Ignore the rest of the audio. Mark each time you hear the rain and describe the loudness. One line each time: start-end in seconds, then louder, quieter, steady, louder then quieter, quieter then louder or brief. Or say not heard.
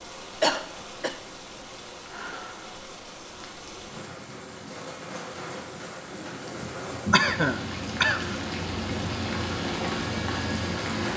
0.0-11.1 louder.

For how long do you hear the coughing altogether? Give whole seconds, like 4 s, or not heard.
2 s.